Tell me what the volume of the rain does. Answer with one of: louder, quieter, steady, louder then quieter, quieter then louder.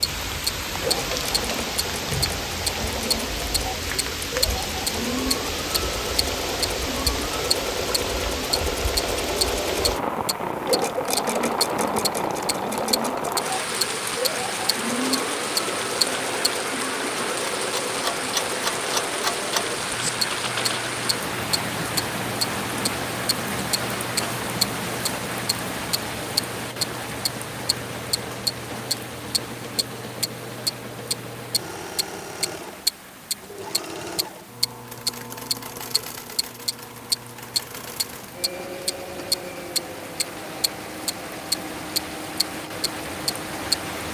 quieter.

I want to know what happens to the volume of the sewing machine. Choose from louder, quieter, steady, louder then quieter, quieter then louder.
quieter.